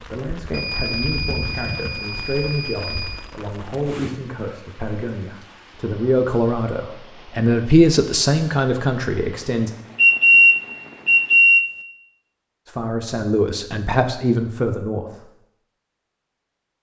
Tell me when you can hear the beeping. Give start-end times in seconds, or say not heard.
0.5-3.2, 9.9-11.7.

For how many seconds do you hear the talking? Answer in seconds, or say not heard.
12 s.